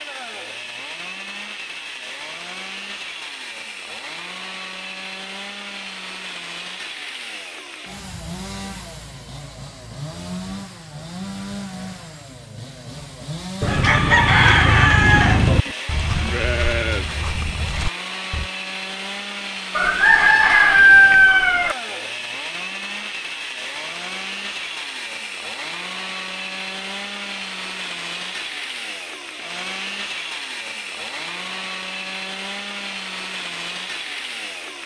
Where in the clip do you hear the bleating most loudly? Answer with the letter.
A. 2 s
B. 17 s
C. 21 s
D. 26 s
B.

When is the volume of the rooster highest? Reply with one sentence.
The loudest moment of the rooster is at 21 seconds.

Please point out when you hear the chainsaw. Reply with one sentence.
You can hear the chainsaw from 0.0 to 34.8 s.